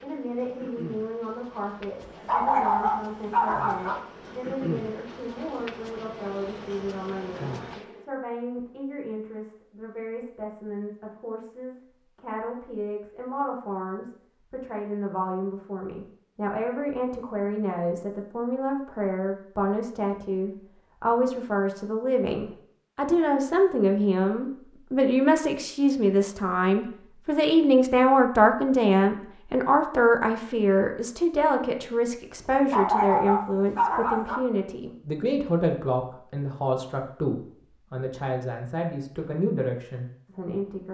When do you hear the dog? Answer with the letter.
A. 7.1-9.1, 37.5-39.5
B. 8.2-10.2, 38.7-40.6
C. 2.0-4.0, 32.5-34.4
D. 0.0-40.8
C.